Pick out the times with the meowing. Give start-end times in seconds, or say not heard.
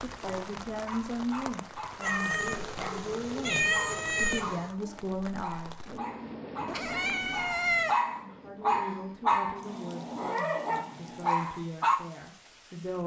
2.0-4.7, 6.7-8.0.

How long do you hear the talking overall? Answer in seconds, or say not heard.
11 s.